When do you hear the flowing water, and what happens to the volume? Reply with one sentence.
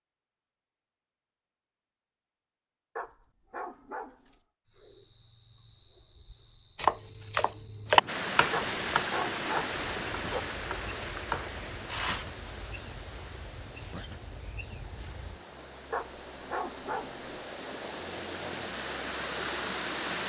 You can hear the flowing water from 8.1 to 20.2 s, getting quieter then louder.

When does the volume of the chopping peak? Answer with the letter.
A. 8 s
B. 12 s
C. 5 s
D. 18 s
A.